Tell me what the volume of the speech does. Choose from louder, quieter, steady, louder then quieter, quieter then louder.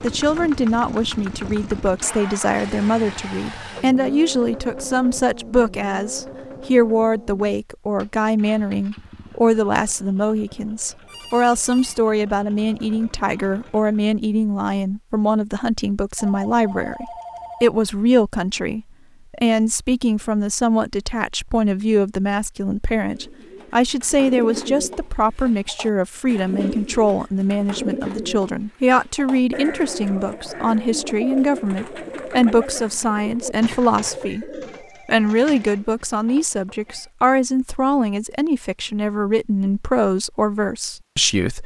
steady.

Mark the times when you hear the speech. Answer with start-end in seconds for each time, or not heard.
0.0-41.6.